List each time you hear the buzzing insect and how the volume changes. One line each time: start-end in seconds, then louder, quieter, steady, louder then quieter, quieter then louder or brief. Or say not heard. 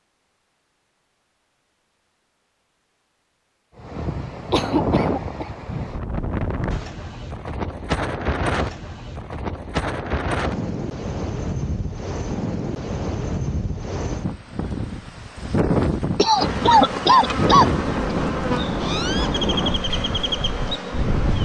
16.4-21.3 steady.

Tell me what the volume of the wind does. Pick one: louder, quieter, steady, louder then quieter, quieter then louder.
steady.